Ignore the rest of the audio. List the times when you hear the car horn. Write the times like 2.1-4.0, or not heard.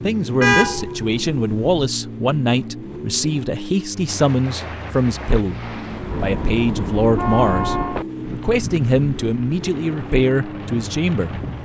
0.4-1.7, 6.1-8.0.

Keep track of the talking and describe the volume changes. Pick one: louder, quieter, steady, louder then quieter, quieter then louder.
steady.